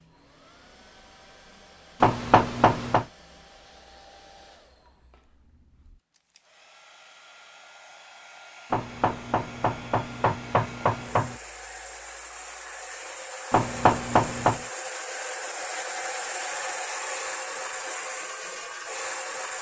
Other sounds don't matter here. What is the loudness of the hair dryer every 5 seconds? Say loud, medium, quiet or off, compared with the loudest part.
quiet, quiet, medium, loud.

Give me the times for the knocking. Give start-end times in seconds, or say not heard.
2.0-3.0, 8.7-11.3, 13.5-14.6.